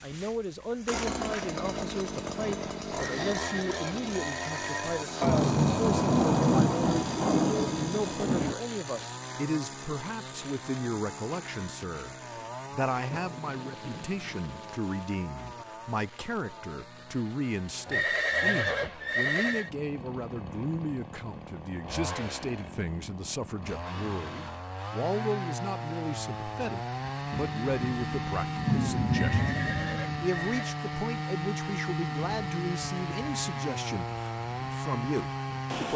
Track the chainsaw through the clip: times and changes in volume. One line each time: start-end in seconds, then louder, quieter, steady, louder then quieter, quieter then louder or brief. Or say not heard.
0.0-35.9 quieter then louder.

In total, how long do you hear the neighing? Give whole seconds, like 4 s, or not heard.
5 s.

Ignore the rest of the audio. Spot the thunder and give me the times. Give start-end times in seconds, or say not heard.
5.2-8.6, 13.1-14.8, 27.3-30.2.